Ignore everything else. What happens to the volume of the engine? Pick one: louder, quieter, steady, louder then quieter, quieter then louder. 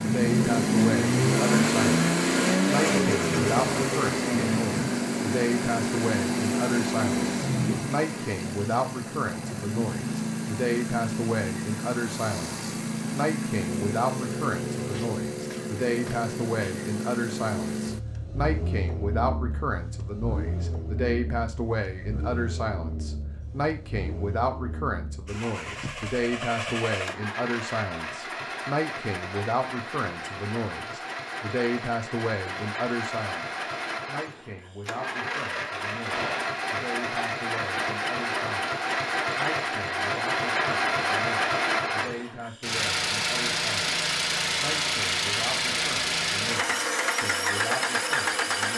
quieter then louder.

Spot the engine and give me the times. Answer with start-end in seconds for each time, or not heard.
0.0-48.7.